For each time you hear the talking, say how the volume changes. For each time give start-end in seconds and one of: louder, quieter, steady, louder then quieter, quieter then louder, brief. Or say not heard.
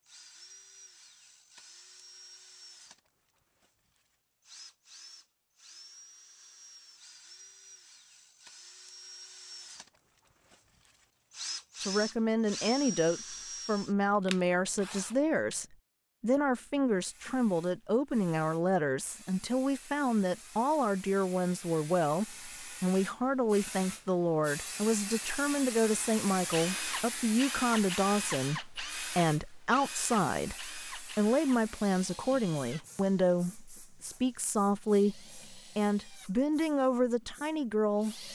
11.8-38.3 steady.